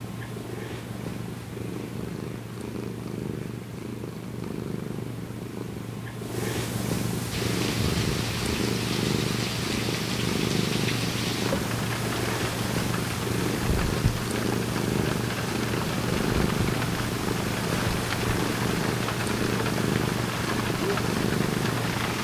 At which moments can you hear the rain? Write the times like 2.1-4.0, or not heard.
7.3-22.1.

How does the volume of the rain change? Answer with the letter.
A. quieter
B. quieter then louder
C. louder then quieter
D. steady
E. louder
D.